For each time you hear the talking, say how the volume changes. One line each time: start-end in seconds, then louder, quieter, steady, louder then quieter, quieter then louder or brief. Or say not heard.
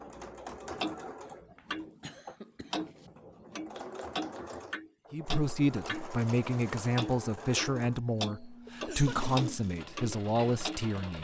5.1-11.1 steady.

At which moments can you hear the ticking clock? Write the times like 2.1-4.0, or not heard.
0.0-2.0, 2.7-6.3, 7.0-10.8.